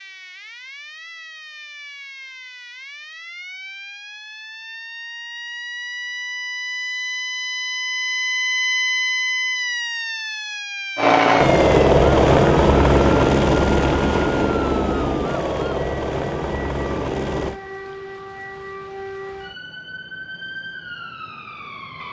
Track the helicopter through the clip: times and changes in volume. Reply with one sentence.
You can hear the helicopter from 10.9 to 17.6 s, getting quieter.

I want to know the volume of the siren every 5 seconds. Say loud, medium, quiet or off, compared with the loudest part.
quiet, loud, medium, medium, medium.